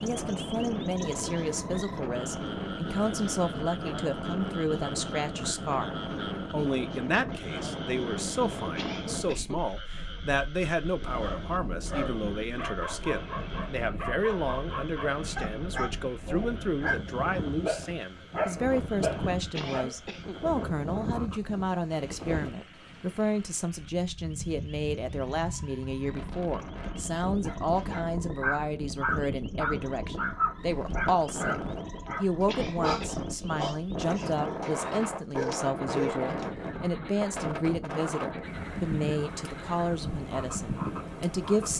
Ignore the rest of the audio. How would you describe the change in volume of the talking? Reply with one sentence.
The volume of the talking stays about the same.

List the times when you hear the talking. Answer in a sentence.
You can hear the talking from 0.0 to 41.7 s.